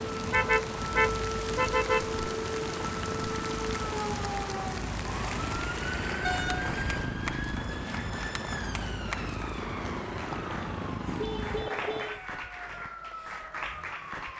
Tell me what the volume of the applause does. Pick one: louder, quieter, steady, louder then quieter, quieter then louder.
steady.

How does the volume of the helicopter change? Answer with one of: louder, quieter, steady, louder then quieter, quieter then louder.
steady.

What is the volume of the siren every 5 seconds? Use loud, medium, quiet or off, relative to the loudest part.
loud, loud, medium.